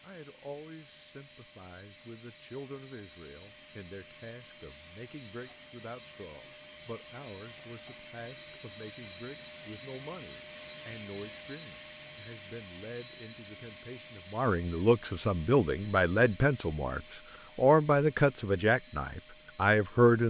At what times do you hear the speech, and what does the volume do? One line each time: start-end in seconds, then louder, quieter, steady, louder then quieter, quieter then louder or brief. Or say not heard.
0.0-20.2 louder.